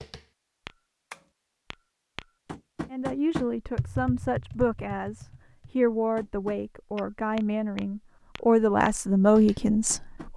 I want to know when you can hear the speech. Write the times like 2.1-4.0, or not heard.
2.9-10.3.